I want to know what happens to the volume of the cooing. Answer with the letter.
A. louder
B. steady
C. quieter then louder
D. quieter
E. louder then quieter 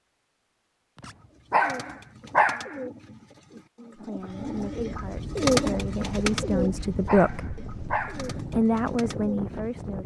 E.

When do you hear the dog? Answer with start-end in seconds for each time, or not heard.
1.0-2.8, 6.5-8.3.